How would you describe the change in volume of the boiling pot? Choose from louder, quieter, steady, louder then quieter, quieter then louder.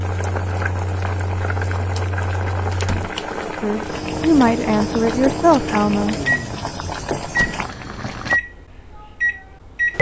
steady.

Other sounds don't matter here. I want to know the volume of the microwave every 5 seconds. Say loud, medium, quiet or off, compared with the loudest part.
medium, loud.